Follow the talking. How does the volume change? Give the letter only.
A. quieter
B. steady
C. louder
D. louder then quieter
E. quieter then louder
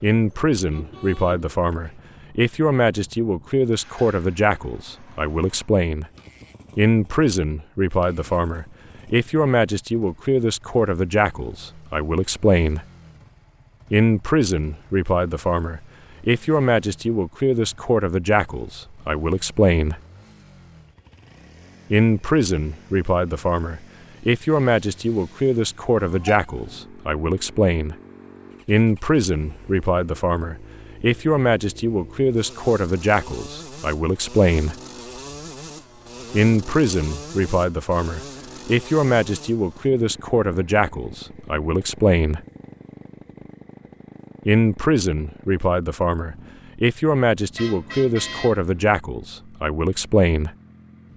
B.